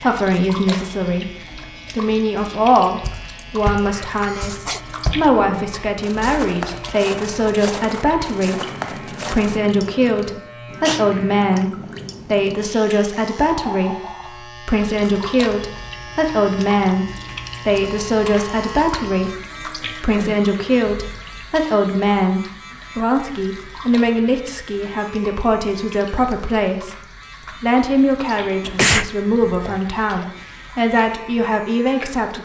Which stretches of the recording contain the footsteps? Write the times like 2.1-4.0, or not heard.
3.0-9.6.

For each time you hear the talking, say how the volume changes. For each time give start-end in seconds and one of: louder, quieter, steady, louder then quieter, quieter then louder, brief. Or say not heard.
0.0-32.4 steady.